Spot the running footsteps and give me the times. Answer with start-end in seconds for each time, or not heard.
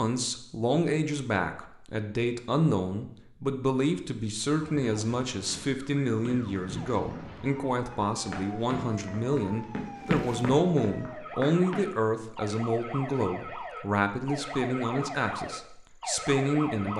5.5-11.9.